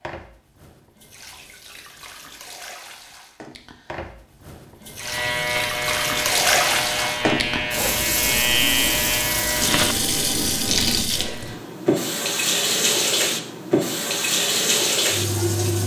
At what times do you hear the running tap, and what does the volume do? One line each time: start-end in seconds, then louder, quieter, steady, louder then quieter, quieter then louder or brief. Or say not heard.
0.0-15.8 louder.